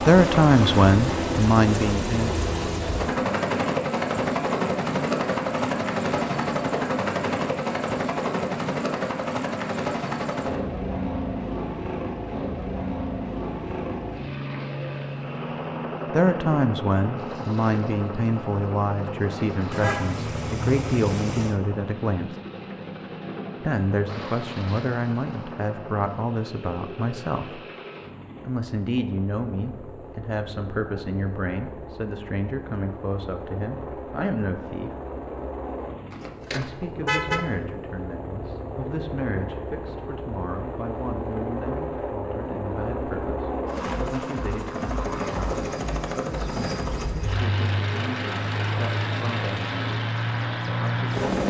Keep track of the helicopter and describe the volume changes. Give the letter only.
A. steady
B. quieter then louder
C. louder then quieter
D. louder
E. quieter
B.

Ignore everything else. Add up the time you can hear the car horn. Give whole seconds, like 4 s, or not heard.
3 s.